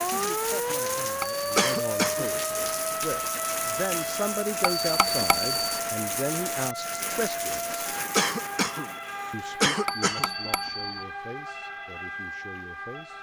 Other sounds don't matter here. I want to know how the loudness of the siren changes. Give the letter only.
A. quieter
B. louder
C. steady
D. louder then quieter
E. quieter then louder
A.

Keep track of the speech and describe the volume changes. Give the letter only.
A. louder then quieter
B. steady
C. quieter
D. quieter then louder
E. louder
A.